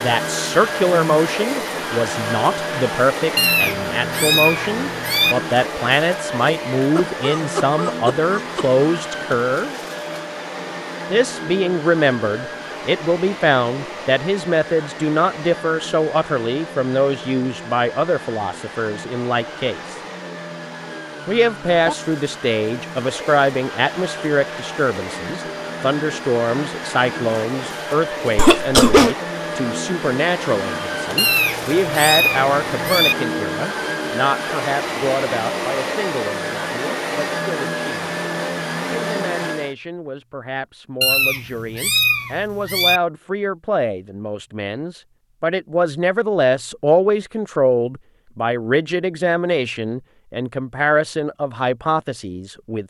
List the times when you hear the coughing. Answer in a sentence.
You can hear the coughing from 7.0 to 8.7 s and from 28.4 to 29.1 s.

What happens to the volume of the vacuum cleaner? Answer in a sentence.
The volume of the vacuum cleaner goes down, then up.